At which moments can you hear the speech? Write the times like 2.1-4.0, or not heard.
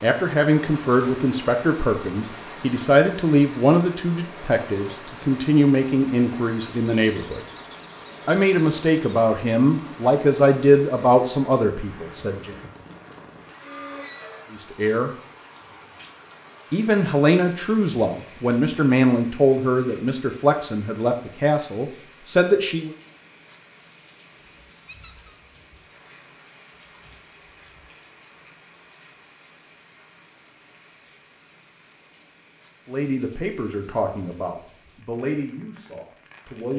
0.0-7.4, 8.2-12.6, 14.5-15.1, 16.7-22.9, 32.9-36.7.